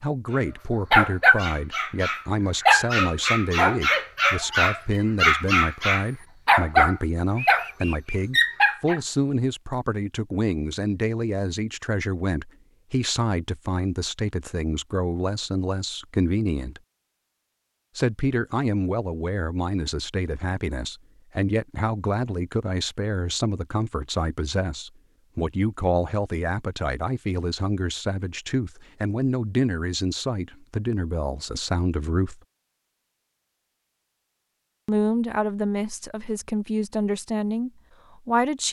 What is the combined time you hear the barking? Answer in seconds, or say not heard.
8 s.